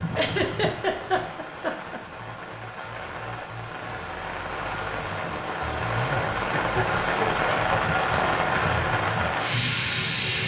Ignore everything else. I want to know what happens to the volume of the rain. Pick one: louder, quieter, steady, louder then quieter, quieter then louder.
louder.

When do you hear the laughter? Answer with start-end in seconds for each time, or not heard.
0.1-2.0, 5.9-7.5.